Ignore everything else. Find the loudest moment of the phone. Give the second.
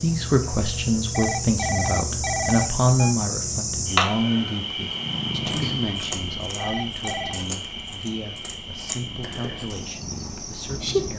2 s.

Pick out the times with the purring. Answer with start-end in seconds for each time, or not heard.
4.8-11.1.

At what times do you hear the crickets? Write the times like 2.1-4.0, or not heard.
0.0-11.1.